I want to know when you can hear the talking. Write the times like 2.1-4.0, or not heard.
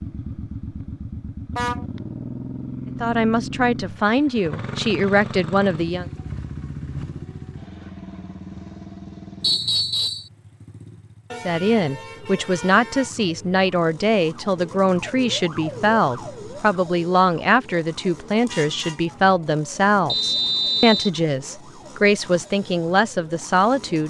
3.0-6.0, 11.4-24.0.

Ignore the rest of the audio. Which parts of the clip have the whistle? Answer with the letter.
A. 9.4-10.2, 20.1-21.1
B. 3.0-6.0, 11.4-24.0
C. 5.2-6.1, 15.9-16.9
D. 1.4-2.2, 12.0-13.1
A.